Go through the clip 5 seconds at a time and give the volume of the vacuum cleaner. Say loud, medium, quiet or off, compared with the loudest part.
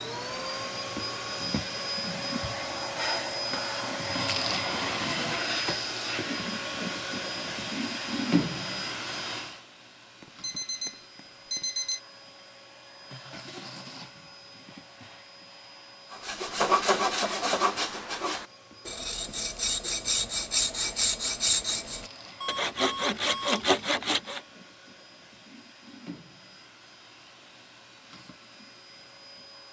loud, loud, quiet, quiet, quiet, quiet.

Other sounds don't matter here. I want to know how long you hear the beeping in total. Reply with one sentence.
The beeping can be heard for 3 seconds in total.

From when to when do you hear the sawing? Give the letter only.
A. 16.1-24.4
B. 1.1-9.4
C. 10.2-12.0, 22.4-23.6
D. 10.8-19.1
A.